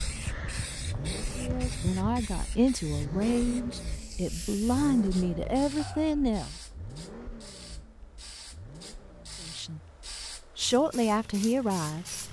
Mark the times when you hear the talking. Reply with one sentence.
The talking can be heard from 1.4 to 6.5 s and from 9.4 to 12.2 s.